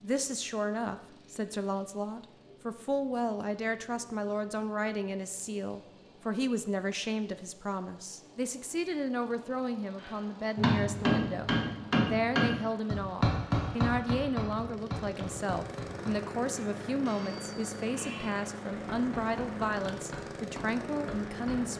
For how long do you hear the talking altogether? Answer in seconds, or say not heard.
22 s.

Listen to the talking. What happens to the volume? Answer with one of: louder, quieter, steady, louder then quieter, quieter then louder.
steady.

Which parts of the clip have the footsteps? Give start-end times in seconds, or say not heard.
not heard.